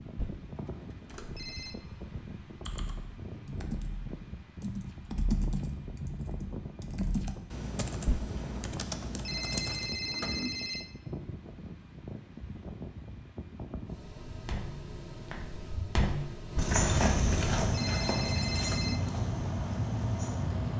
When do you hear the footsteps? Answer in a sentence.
You can hear the footsteps from 14.2 to 20.5 s.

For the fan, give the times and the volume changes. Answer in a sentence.
The fan can be heard from 0.0 to 20.7 s, getting louder.